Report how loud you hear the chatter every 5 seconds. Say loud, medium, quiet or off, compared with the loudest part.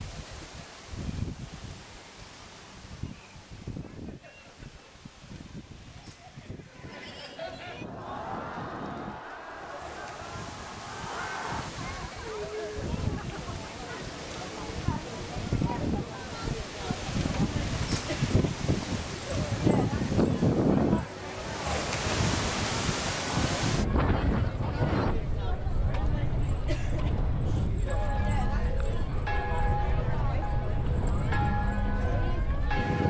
quiet, loud, loud, loud, loud, loud, loud.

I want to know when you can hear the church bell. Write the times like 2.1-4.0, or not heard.
27.8-33.0.